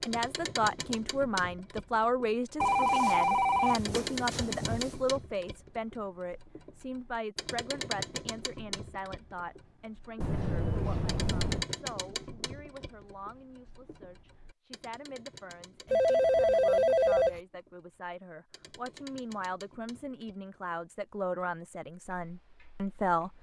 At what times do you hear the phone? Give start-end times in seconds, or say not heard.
2.6-5.0, 10.2-11.7, 15.9-17.4.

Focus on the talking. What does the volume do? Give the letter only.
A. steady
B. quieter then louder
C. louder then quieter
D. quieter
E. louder
B.